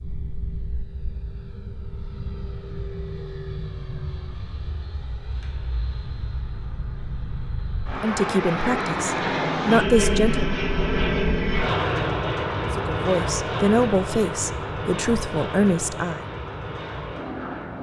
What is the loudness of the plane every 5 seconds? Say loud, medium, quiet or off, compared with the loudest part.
quiet, loud, loud, medium.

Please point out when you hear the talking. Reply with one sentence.
You can hear the talking from 8.0 to 10.6 s and from 12.7 to 16.2 s.